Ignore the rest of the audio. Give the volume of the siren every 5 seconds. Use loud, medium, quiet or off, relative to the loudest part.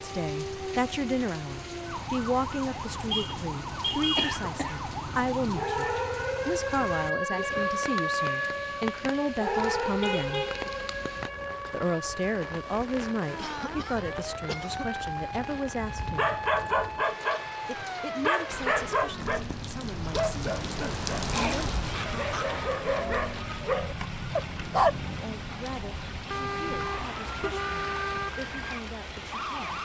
medium, loud, medium, medium, medium, medium.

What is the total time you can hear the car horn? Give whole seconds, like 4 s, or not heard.
4 s.